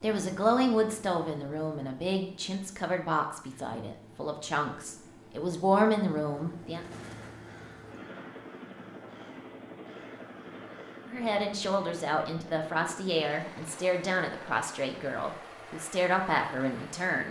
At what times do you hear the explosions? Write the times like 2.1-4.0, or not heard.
6.8-7.5.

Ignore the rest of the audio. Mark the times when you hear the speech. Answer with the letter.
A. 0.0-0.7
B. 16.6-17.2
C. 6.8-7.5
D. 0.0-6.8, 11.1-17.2
D.